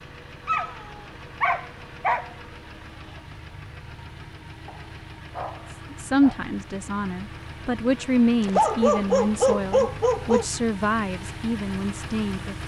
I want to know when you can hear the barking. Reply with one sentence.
You can hear the barking from 0.5 to 2.3 s, from 4.7 to 6.4 s and from 8.4 to 10.4 s.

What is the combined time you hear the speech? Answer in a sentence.
The speech can be heard for 7 seconds in total.